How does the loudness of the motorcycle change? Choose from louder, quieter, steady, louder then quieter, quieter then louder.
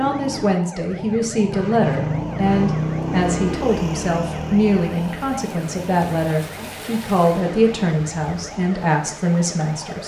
louder then quieter.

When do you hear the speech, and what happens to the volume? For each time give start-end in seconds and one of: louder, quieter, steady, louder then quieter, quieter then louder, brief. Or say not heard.
0.0-10.0 steady.